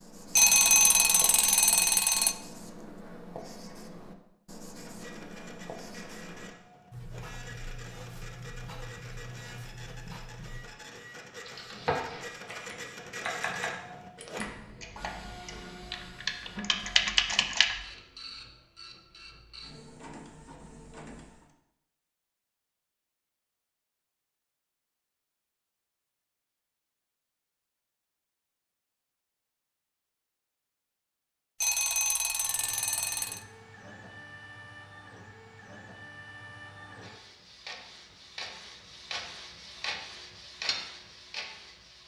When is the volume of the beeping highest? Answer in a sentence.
The volume of the beeping peaks at 1 second.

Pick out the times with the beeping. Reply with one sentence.
The beeping can be heard from 0.3 to 2.4 s and from 31.6 to 33.4 s.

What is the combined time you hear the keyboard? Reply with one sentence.
You can hear the keyboard for 6 seconds altogether.